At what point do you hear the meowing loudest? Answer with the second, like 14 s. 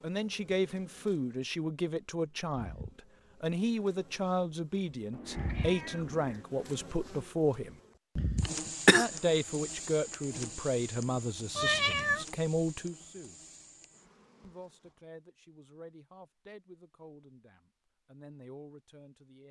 12 s.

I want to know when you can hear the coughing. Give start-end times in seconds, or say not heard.
8.4-9.1.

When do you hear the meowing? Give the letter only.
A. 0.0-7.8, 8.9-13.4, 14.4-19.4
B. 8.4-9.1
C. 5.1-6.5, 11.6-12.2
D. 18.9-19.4
C.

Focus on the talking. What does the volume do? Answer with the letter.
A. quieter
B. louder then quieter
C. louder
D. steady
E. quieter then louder
A.